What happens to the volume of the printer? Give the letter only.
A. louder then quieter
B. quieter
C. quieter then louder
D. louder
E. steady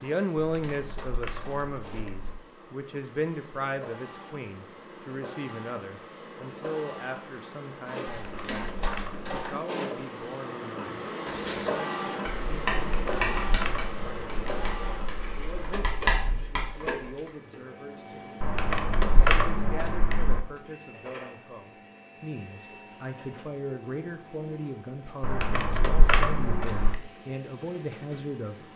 A.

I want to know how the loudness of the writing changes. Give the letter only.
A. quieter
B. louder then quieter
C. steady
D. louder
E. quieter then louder
E.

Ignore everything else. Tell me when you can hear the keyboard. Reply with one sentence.
You can hear the keyboard from 0.3 to 2.4 s, from 8.1 to 9.3 s, from 12.8 to 14.8 s, from 18.4 to 20.4 s and from 25.2 to 27.0 s.